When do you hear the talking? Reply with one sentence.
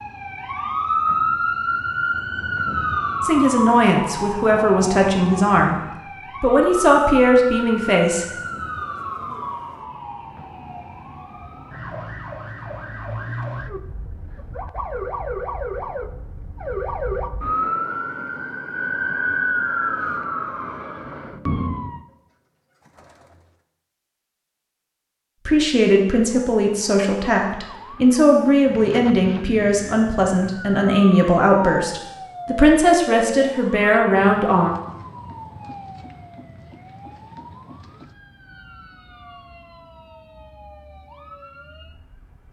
The talking can be heard from 3.2 to 8.3 s and from 25.4 to 34.8 s.